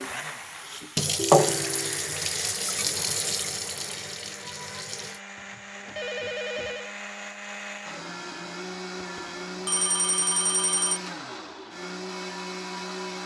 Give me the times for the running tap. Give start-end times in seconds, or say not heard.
0.0-5.2.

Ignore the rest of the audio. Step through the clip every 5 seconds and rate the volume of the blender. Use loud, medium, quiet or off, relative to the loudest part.
medium, loud, loud.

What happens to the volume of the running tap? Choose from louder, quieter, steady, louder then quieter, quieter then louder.
louder then quieter.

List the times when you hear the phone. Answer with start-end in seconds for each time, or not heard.
1.3-2.1, 5.3-7.0, 9.0-11.0.